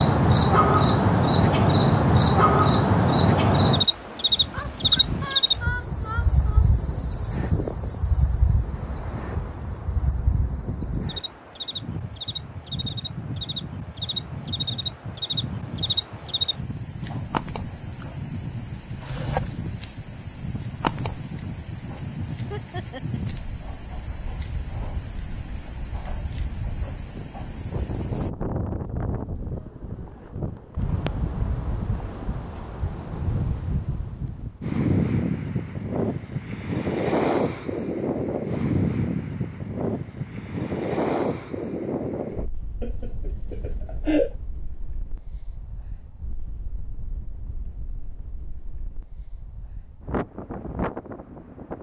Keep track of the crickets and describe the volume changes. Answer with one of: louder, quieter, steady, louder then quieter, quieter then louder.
quieter.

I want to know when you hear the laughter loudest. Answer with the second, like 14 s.
44 s.